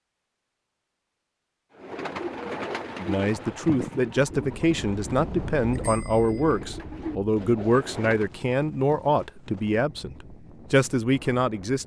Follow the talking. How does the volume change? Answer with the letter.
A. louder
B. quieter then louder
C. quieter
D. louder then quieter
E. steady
E.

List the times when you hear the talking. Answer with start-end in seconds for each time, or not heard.
3.0-11.8.